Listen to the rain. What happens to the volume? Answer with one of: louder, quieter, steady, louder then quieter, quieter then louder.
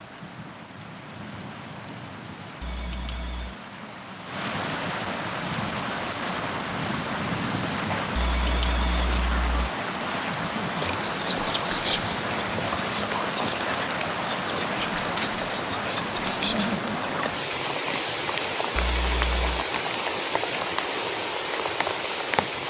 louder.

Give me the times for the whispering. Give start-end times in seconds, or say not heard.
10.8-17.3.